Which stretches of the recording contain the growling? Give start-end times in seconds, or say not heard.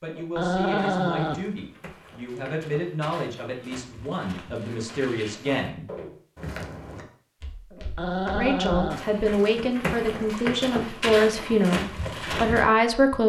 0.1-1.4, 7.7-9.0.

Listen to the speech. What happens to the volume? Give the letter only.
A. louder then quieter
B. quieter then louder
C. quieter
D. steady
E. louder
E.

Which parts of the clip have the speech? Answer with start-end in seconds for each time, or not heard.
0.0-5.8, 8.2-13.2.